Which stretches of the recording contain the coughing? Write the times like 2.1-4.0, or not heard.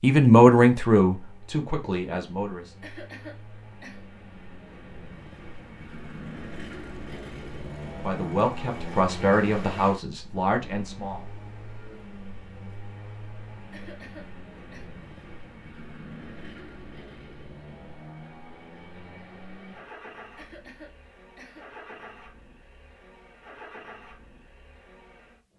2.8-4.0, 13.7-14.9, 20.4-21.8.